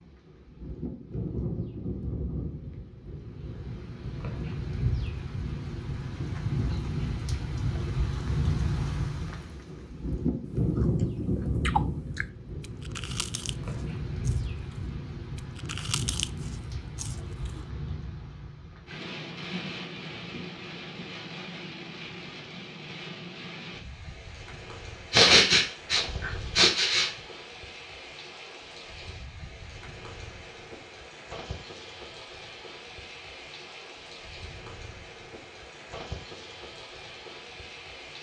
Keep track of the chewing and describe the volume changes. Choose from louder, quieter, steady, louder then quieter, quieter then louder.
quieter then louder.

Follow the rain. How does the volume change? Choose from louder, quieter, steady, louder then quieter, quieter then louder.
quieter.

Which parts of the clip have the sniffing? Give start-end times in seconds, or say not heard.
25.1-27.1.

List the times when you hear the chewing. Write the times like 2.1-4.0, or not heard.
10.8-17.6.